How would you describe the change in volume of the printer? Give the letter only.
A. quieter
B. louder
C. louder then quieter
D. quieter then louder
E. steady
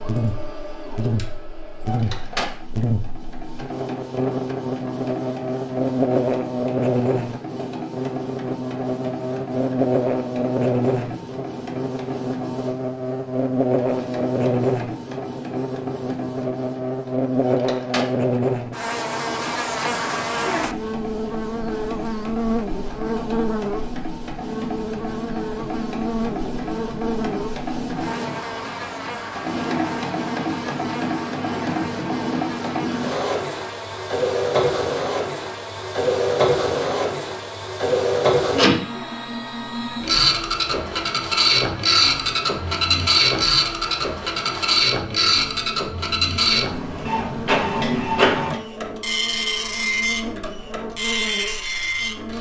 B.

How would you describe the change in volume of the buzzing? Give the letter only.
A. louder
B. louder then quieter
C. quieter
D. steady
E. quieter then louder
C.